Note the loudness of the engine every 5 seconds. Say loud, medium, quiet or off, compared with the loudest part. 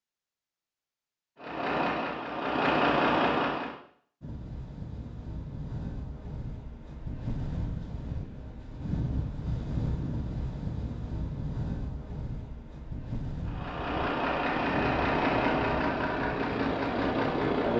loud, off, loud, loud.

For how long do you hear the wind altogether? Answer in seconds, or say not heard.
13 s.